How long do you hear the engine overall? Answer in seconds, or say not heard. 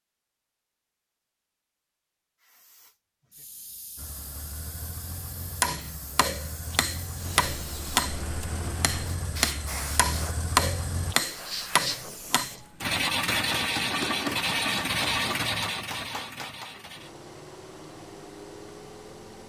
14 s.